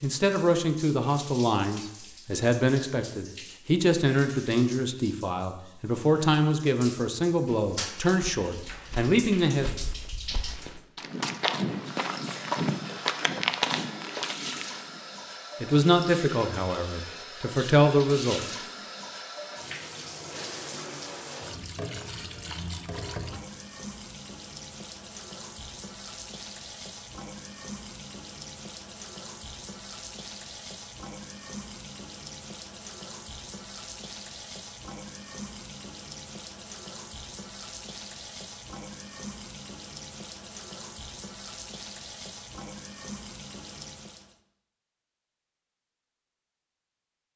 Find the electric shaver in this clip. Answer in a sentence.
You can't hear the electric shaver here.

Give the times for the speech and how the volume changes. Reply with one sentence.
The speech can be heard from 0.0 to 9.8 s, at a steady volume; and briefly from 15.6 to 18.4 s.